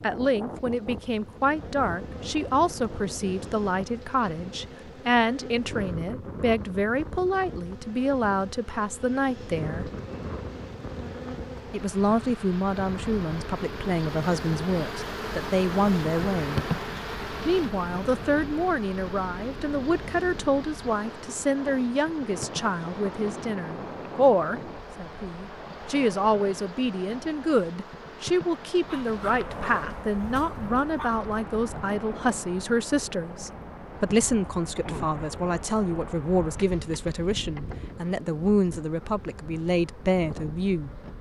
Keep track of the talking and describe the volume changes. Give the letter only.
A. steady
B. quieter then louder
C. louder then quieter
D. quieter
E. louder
A.